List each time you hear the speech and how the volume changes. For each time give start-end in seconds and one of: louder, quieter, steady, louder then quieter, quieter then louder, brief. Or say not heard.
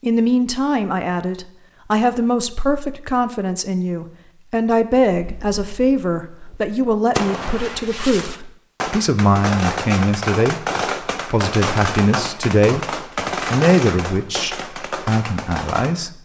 0.0-16.2 steady.